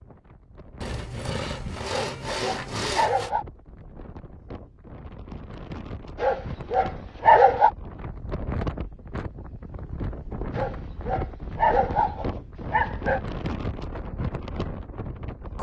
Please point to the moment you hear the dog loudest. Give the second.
7 s.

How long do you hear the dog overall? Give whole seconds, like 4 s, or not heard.
6 s.